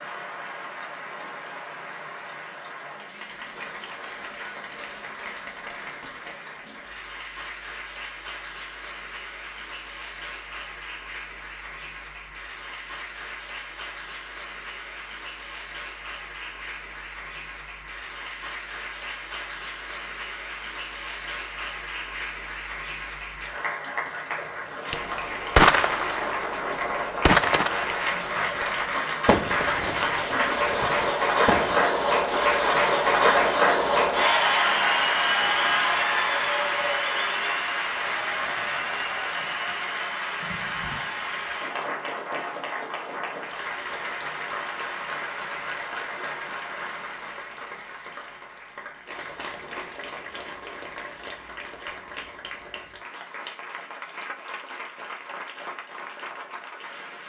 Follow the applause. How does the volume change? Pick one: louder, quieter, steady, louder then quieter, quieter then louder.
louder then quieter.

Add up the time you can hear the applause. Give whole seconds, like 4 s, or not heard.
57 s.